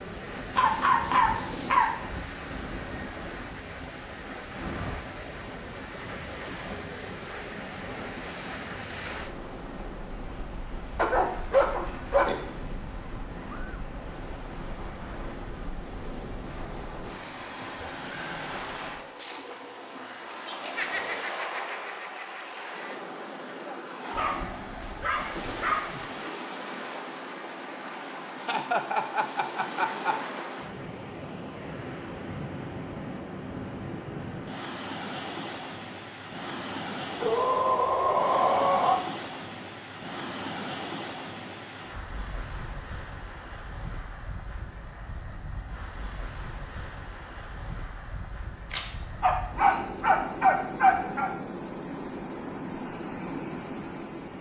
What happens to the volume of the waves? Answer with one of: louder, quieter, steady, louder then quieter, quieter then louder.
steady.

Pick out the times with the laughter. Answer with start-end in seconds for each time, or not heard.
20.4-23.0, 28.4-30.4.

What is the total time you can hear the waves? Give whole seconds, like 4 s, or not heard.
54 s.